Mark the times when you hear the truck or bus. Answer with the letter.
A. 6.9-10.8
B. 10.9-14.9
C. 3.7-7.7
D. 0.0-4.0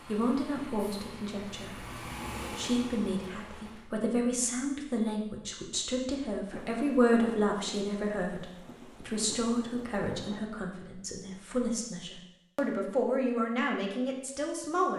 D.